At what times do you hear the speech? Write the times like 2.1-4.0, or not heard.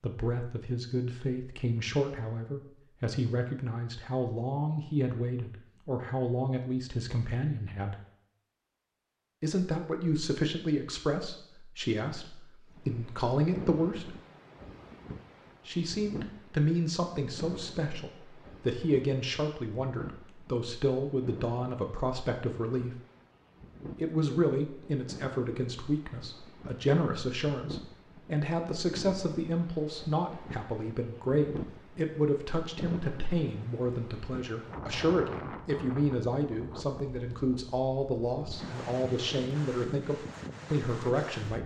0.0-8.0, 9.4-14.2, 15.7-22.9, 23.9-41.6.